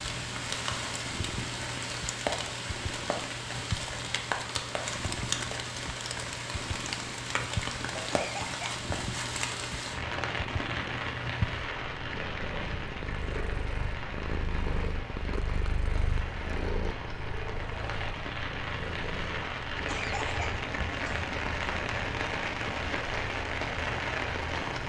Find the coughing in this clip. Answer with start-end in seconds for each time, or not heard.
8.1-8.8, 19.9-21.3.